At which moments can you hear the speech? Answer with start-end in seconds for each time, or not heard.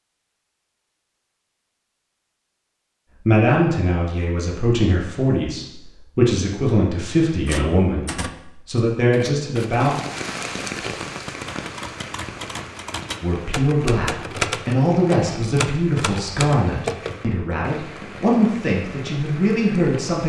3.2-9.9, 13.2-20.2.